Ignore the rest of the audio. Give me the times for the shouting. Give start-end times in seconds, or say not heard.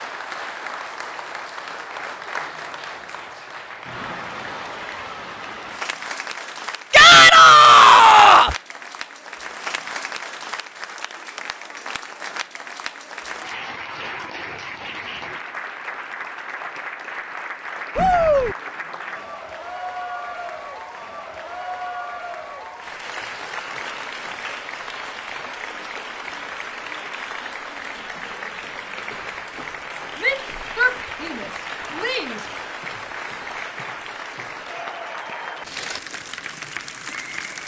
6.9-8.6, 17.9-18.6, 30.2-32.5.